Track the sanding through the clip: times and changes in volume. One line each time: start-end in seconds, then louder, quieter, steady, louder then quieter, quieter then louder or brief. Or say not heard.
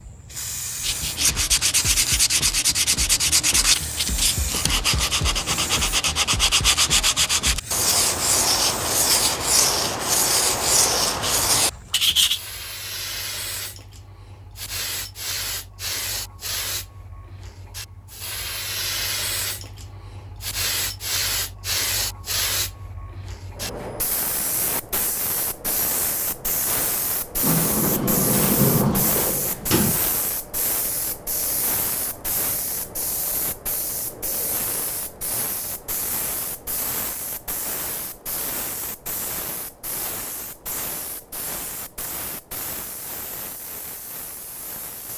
0.8-12.4 steady.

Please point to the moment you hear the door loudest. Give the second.
29 s.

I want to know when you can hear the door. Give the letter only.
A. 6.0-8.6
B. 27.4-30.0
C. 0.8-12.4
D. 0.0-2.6
B.